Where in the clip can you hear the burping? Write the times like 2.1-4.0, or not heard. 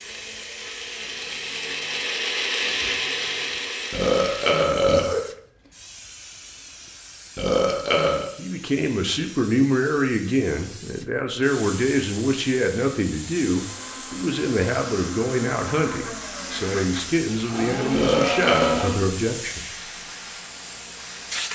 3.9-5.3, 7.3-8.3, 17.9-18.9.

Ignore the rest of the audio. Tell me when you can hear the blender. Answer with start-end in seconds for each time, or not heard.
0.0-4.7, 13.4-19.1.